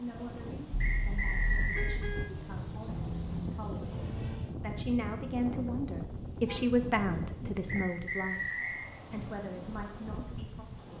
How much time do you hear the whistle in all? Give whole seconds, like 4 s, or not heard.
2 s.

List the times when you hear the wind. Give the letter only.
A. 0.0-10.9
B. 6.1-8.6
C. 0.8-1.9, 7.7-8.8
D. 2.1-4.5
A.